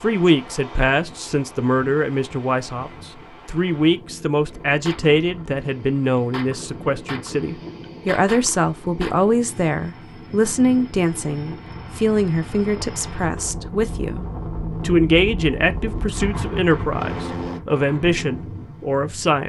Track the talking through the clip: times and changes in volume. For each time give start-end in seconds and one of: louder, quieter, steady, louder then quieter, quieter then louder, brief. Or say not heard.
0.0-19.4 steady.